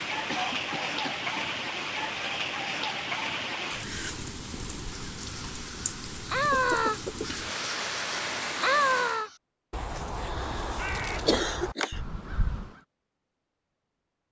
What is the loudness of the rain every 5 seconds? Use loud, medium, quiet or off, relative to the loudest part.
loud, loud, off.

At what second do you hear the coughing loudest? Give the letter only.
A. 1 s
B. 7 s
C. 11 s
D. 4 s
C.